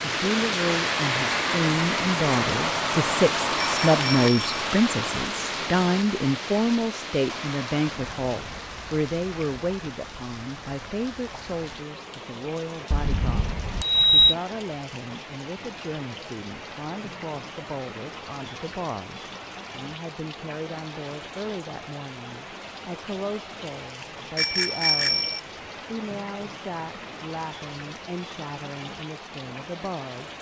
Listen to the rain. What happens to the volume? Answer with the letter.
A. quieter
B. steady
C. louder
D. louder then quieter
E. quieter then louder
A.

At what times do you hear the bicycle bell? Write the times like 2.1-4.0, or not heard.
3.6-4.5, 12.9-14.3, 24.4-25.4.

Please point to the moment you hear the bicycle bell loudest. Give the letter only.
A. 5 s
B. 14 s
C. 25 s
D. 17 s
B.